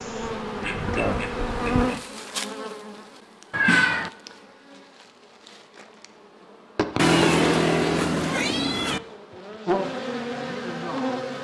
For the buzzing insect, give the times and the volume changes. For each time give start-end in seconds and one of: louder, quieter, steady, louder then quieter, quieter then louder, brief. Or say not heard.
0.0-11.4 quieter then louder.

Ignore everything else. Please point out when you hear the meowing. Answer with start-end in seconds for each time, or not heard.
3.5-4.1, 7.0-9.0.